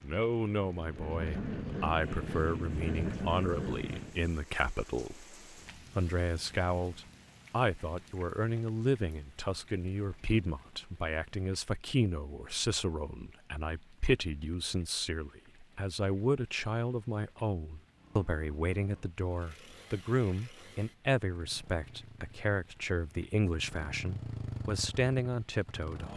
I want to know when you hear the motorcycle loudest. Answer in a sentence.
The loudest moment of the motorcycle is at 3 seconds.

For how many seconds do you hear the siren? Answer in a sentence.
You can't hear the siren here.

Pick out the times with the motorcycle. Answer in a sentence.
The motorcycle can be heard from 0.0 to 4.2 s and from 17.9 to 26.1 s.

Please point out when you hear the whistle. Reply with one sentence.
You can't hear the whistle here.